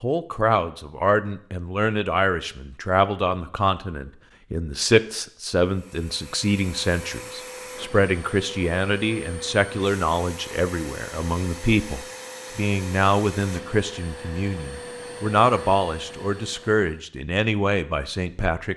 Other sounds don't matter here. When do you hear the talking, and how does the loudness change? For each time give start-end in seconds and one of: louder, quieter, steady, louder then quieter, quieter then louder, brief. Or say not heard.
0.0-18.7 steady.